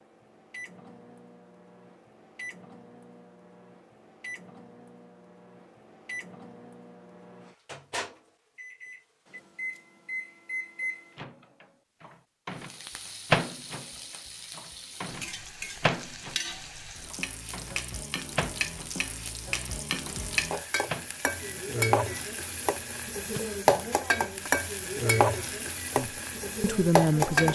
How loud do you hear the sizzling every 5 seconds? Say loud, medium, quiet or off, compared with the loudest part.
off, off, quiet, medium, loud, loud.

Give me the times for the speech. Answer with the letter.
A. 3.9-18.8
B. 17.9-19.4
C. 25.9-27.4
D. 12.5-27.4
C.